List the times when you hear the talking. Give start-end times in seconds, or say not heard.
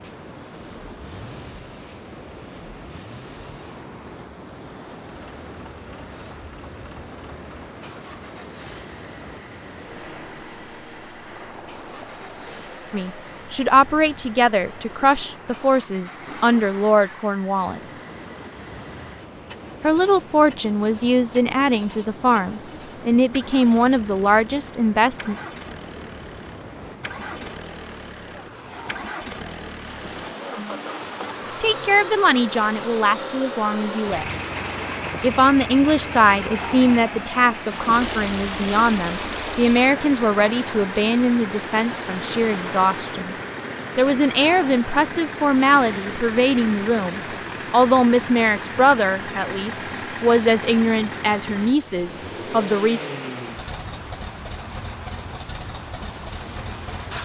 12.9-18.0, 19.8-25.4, 31.6-34.2, 35.2-43.4, 44.0-53.0.